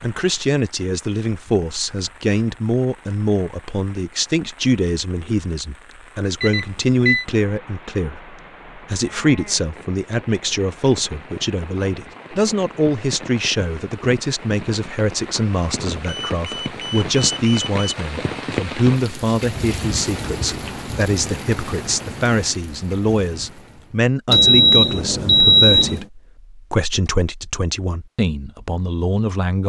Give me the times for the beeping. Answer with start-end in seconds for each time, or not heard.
6.4-7.2, 16.0-17.9, 24.2-26.1.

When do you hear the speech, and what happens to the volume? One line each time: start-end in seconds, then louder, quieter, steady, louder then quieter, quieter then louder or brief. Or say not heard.
0.0-29.6 steady.